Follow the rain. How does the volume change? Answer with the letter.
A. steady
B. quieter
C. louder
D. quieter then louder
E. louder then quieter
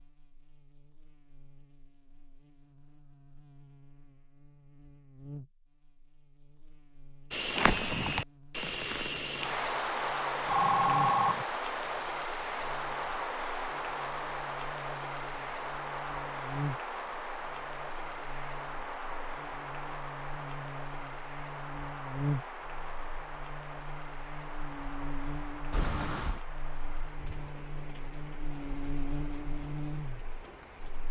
B.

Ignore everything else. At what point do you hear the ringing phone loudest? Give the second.
11 s.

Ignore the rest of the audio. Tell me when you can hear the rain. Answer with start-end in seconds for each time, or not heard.
7.3-31.0.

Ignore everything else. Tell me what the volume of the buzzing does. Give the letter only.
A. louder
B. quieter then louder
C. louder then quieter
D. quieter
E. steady
A.